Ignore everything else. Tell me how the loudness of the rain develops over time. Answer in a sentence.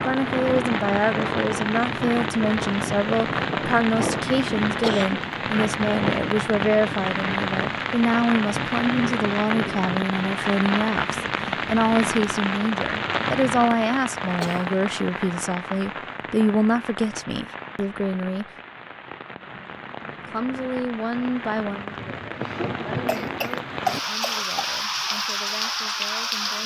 The volume of the rain goes down, then up.